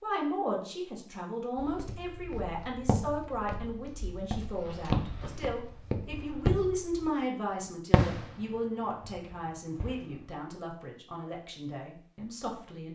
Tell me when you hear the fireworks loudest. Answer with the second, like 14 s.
8 s.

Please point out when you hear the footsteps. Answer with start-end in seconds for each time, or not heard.
1.6-7.1.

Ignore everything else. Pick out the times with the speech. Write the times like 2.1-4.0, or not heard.
0.0-12.8.